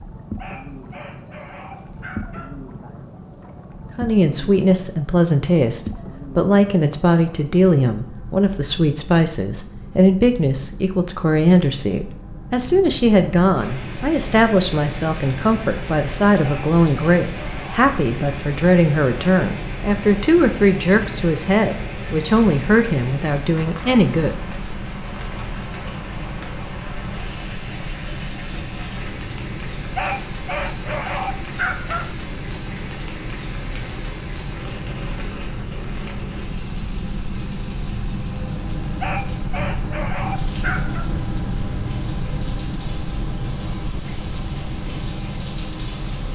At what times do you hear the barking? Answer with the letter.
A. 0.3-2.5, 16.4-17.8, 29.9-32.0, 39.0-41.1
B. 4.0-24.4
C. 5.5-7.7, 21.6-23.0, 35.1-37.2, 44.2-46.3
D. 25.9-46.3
A.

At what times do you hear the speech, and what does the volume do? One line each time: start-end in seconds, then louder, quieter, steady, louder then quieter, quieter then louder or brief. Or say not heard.
4.0-24.4 steady.